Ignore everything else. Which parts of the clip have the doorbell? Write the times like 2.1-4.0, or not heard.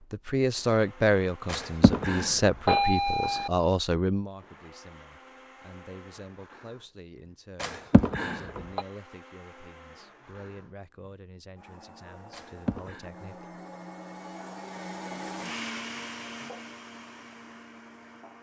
1.4-3.5, 7.6-8.8, 12.3-13.1.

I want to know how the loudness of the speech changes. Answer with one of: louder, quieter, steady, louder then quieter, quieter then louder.
quieter.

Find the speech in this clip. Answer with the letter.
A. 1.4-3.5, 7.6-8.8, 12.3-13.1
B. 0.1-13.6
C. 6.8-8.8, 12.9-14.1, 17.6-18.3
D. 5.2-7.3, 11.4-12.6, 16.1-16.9
B.